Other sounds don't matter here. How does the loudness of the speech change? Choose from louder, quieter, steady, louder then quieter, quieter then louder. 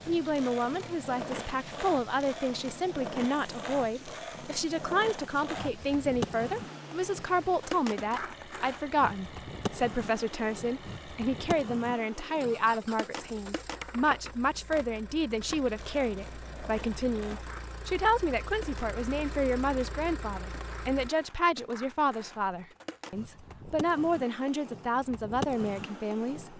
steady.